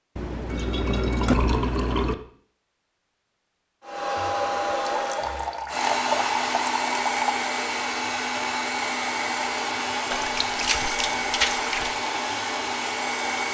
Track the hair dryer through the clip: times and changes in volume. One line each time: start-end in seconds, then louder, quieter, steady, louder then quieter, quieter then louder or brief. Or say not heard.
3.8-13.5 steady.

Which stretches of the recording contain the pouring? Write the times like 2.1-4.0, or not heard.
0.1-2.1, 4.8-7.3, 10.1-11.9.